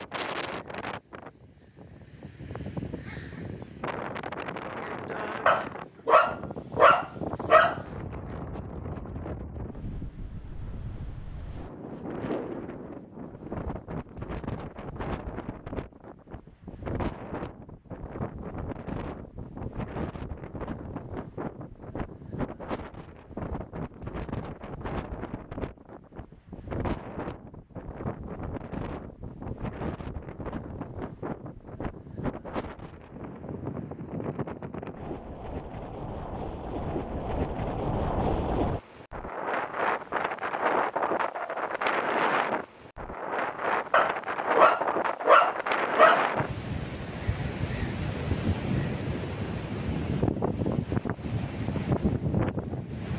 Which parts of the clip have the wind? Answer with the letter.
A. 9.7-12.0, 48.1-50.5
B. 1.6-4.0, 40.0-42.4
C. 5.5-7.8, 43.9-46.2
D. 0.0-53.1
D.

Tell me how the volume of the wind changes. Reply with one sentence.
The loudness of the wind goes up.